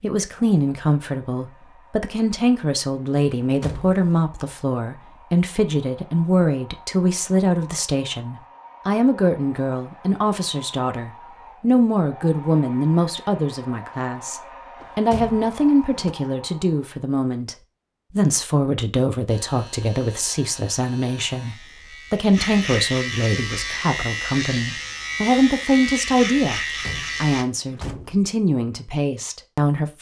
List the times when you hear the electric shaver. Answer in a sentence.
You can hear the electric shaver from 19.2 to 27.4 s.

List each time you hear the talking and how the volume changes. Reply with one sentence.
You can hear the talking from 0.0 to 29.9 s, at a steady volume.